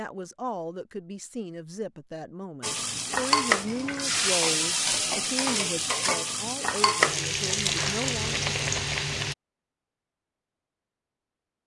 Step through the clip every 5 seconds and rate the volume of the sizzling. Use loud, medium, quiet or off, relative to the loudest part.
loud, loud, off.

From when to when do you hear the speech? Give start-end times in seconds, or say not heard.
0.0-8.4.